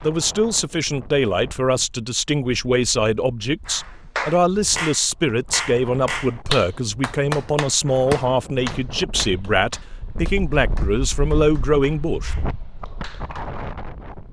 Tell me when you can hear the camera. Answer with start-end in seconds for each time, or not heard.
not heard.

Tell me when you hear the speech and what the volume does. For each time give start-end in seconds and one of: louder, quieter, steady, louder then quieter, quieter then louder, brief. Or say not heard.
0.0-12.3 steady.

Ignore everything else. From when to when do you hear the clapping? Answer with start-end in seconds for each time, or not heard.
3.6-13.5.